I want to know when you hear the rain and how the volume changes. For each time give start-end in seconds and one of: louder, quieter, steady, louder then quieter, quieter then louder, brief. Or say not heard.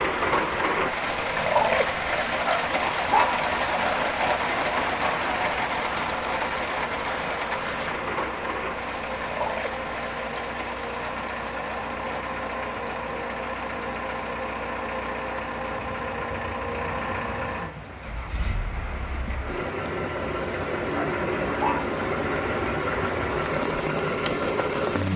0.0-25.1 quieter then louder.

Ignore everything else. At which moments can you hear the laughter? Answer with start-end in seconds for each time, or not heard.
not heard.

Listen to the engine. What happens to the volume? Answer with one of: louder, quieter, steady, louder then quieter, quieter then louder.
louder.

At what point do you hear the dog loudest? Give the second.
3 s.